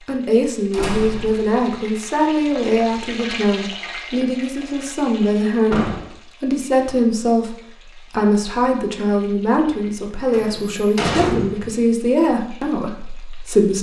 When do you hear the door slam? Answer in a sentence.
The door slam can be heard from 0.7 to 1.6 s, from 5.7 to 6.2 s and from 10.3 to 11.8 s.